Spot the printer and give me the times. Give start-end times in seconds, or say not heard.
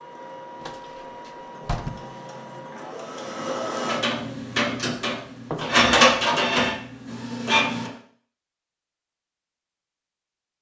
0.0-7.9.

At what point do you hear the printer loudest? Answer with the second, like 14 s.
6 s.